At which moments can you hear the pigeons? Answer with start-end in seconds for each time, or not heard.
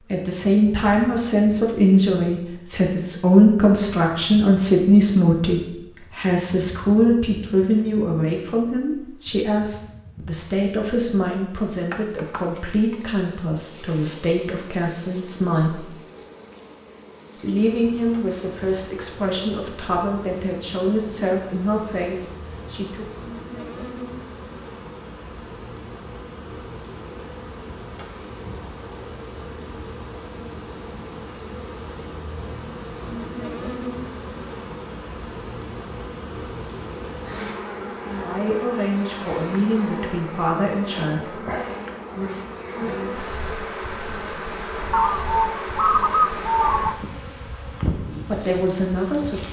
44.9-47.0.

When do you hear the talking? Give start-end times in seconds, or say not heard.
0.1-15.8, 17.4-23.1, 38.1-41.4, 48.2-49.4.